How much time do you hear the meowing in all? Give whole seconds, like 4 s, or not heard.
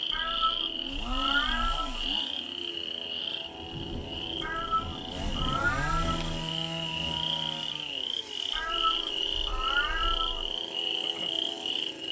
6 s.